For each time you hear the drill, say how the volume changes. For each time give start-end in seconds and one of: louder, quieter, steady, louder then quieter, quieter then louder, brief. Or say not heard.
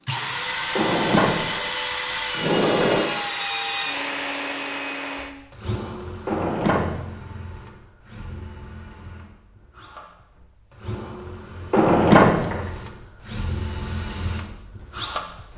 0.1-15.5 quieter then louder.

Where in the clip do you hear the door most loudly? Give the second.
12 s.